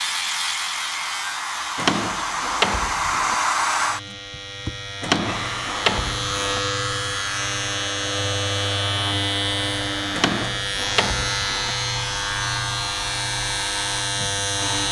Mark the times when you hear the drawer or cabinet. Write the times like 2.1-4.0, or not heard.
1.8-3.4, 5.0-6.6, 10.1-11.8.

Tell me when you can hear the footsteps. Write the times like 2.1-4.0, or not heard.
not heard.